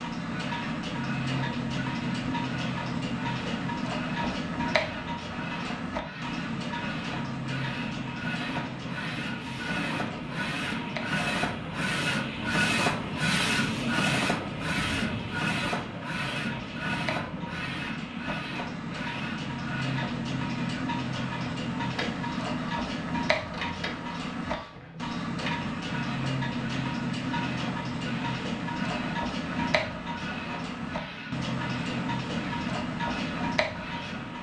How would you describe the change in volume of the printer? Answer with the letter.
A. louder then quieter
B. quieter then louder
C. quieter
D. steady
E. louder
A.